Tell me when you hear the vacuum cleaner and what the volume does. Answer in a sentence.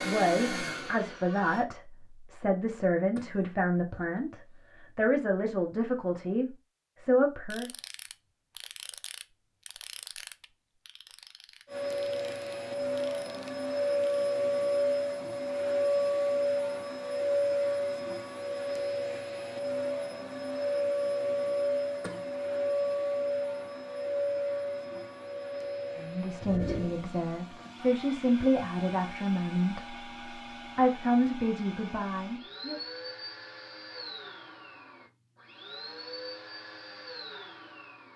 You can hear the vacuum cleaner briefly from 0.0 to 1.6 s; and from 11.7 to 38.1 s, getting quieter.